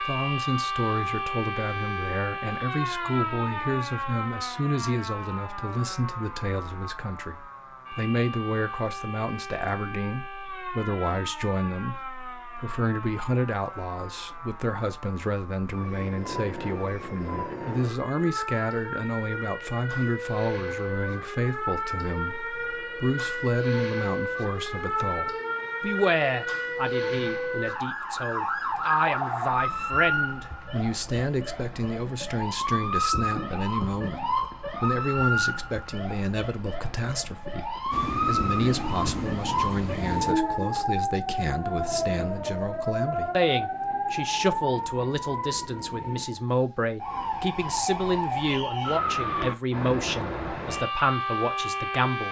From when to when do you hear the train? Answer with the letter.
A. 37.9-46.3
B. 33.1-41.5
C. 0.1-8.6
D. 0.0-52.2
A.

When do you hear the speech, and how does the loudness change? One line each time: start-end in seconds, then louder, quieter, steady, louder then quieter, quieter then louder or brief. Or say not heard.
0.0-52.2 steady.